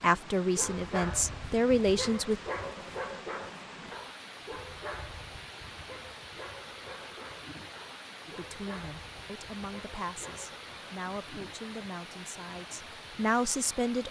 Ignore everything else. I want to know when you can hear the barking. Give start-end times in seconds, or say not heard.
0.6-10.6.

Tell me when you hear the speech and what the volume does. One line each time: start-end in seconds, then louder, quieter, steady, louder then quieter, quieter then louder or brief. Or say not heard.
0.0-2.4 brief
8.2-14.0 louder.